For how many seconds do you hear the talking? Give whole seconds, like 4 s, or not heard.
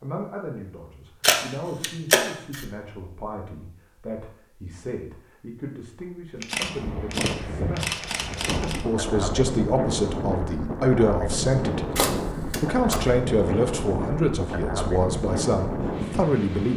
17 s.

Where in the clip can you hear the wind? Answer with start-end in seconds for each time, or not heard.
6.6-16.7.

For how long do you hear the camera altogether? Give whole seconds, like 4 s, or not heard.
5 s.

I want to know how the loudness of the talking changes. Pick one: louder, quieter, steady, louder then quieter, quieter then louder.
louder.